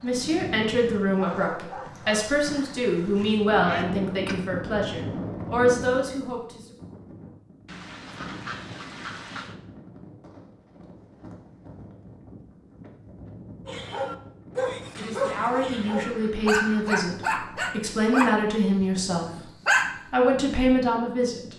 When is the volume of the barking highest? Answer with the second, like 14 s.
20 s.